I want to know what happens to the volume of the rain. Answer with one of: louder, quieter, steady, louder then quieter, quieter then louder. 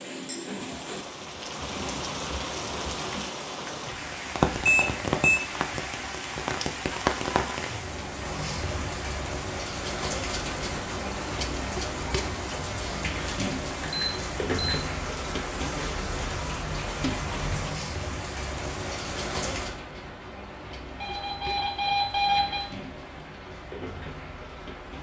quieter.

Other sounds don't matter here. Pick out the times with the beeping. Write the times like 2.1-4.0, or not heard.
4.6-5.4, 13.8-14.8, 21.0-22.6.